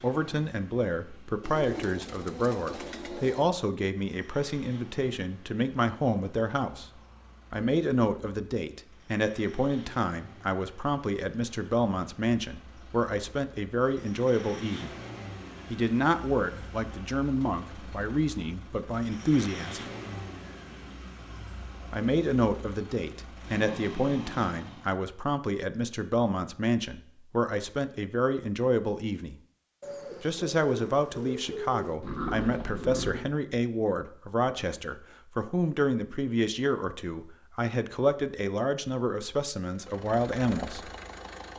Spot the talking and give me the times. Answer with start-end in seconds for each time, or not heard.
0.0-15.0, 15.7-19.9, 21.9-29.4, 30.2-40.9.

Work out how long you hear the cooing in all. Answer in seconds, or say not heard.
4 s.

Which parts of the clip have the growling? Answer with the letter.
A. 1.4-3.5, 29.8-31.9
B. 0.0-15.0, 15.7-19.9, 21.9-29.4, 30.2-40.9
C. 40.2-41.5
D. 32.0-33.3
D.